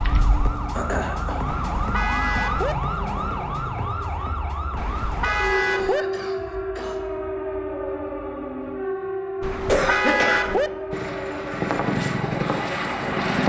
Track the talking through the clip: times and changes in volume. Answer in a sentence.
You can't hear the talking here.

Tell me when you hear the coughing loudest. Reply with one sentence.
The loudest moment of the coughing is at 10 seconds.